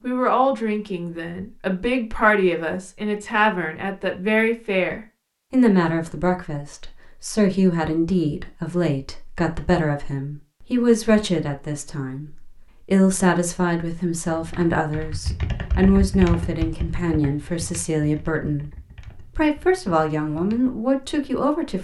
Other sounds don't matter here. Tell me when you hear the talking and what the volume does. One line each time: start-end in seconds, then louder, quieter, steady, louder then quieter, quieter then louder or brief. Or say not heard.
0.0-21.7 steady.